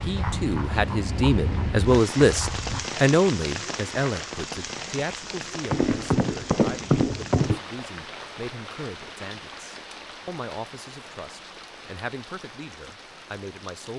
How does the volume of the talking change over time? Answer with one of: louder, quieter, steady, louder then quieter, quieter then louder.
quieter.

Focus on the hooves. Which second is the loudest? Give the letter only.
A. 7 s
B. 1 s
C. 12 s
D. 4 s
A.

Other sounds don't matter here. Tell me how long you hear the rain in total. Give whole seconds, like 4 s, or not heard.
14 s.